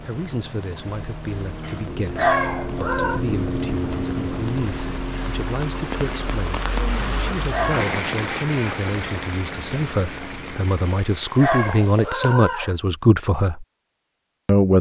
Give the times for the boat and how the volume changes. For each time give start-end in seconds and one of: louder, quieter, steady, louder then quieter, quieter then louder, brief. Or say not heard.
0.0-10.7 louder then quieter.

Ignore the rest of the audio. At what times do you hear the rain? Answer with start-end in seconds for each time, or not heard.
0.0-12.3.